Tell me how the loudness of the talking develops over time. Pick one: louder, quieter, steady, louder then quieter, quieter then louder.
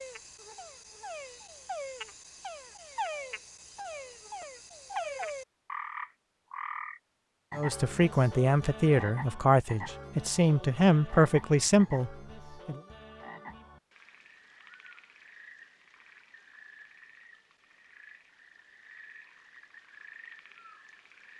steady.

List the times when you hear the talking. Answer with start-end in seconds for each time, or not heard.
7.5-12.8.